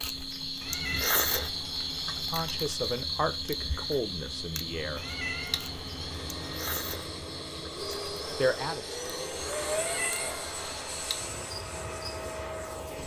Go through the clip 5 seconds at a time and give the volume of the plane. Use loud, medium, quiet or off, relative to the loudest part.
medium, loud, loud.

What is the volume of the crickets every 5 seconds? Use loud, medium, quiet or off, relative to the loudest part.
loud, medium, medium.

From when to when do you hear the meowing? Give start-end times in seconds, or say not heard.
0.6-2.2, 5.0-6.4, 9.7-11.2.